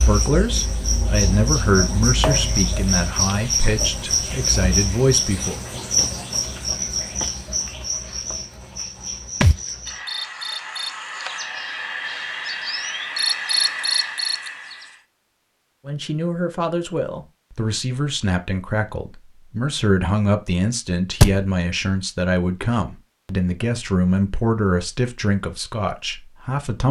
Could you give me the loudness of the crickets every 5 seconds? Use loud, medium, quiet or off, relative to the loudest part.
loud, loud, loud, off, off, off.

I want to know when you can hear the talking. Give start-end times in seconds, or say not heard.
0.0-5.6, 15.8-26.8.